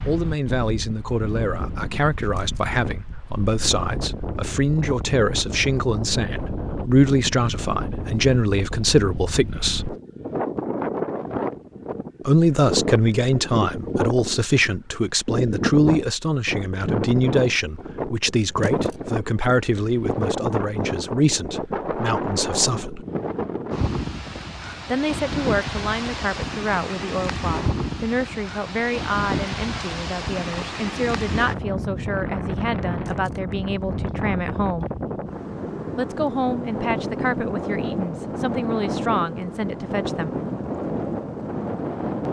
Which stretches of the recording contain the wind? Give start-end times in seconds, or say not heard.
0.0-42.2.